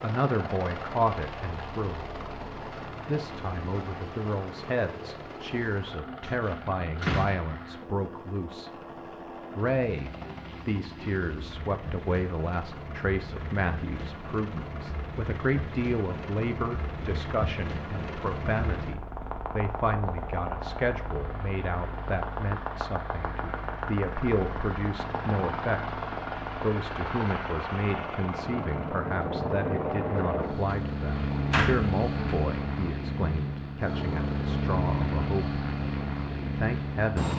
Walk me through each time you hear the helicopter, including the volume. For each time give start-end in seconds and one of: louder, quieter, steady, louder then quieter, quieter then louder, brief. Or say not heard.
0.0-37.3 louder.